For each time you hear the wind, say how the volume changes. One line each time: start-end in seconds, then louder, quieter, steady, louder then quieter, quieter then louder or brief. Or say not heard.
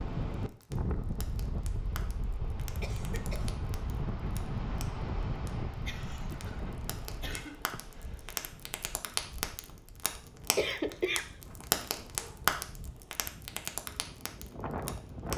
0.0-15.3 quieter then louder.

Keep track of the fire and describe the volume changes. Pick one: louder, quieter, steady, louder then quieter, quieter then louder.
louder.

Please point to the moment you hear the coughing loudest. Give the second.
11 s.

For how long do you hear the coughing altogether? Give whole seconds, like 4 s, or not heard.
3 s.